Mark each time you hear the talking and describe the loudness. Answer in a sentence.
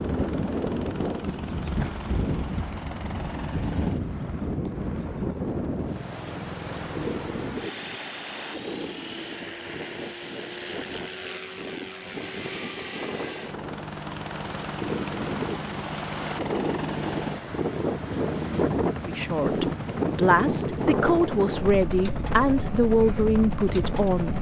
The talking can be heard from 19.1 to 24.3 s, at a steady volume.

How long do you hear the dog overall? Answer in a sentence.
You can't hear the dog here.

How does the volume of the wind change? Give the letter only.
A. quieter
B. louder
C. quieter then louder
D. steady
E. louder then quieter
C.